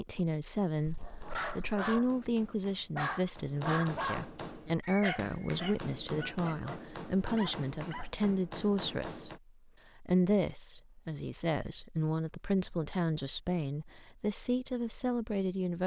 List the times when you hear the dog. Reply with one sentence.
You can hear the dog from 0.8 to 8.3 s.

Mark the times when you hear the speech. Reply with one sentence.
The speech can be heard from 0.0 to 0.9 s, from 1.6 to 9.3 s and from 10.0 to 15.8 s.